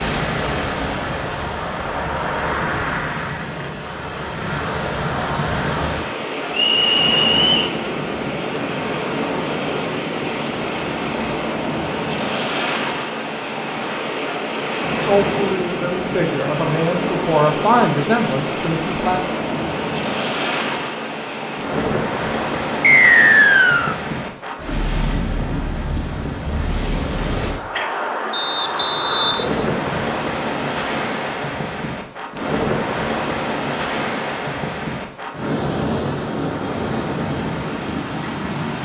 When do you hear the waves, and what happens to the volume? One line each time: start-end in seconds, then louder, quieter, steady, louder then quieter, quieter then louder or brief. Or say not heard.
0.0-38.8 steady.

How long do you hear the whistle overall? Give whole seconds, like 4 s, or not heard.
4 s.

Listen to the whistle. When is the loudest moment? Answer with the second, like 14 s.
23 s.